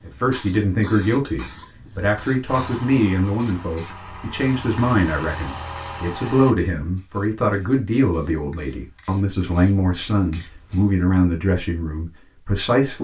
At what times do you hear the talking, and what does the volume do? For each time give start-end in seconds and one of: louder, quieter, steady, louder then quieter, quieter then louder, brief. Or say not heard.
0.0-12.9 steady.